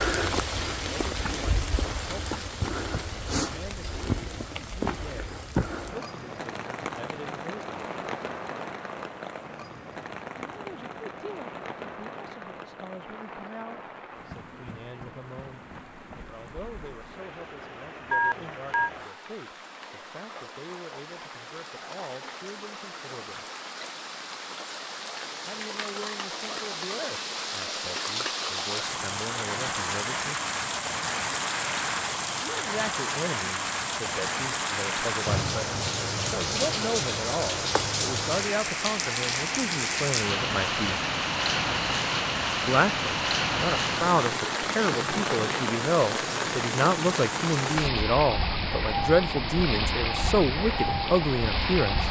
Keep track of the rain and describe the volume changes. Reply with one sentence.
The volume of the rain goes down, then up.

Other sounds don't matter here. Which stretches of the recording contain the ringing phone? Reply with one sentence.
You can hear the ringing phone from 18.1 to 18.9 s.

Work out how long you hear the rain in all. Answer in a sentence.
The rain can be heard for 52 seconds in total.